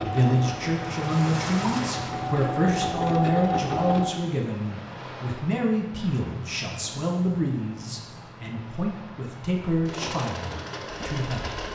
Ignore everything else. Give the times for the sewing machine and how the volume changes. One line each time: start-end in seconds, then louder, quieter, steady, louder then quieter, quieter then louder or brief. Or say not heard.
0.0-4.2 louder
9.7-11.7 brief.